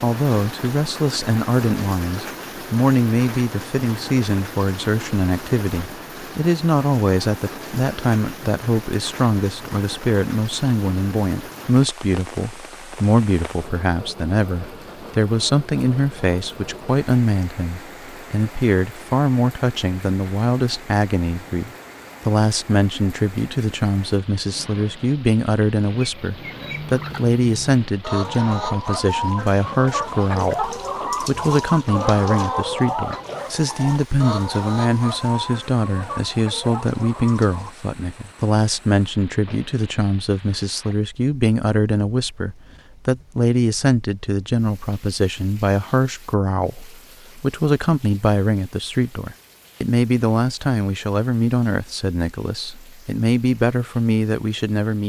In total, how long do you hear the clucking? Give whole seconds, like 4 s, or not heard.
12 s.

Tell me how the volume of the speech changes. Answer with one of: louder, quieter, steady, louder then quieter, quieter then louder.
steady.